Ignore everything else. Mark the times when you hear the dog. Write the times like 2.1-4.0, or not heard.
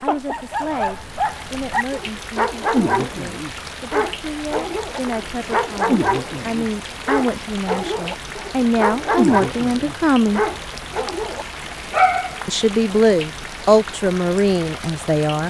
0.2-12.6.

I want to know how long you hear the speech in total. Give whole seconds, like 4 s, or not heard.
13 s.